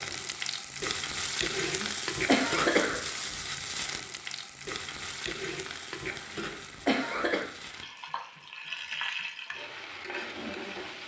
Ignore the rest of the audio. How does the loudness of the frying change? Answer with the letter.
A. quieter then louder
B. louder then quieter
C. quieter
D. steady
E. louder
A.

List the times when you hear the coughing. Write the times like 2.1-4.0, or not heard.
1.6-3.0, 6.0-7.5.